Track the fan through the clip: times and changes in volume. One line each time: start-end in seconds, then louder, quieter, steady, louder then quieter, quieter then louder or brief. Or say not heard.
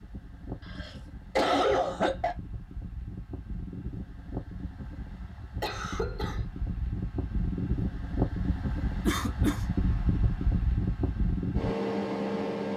0.0-12.7 louder.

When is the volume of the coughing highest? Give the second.
2 s.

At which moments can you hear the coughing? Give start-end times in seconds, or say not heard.
0.7-2.4, 5.6-6.4, 9.1-9.6.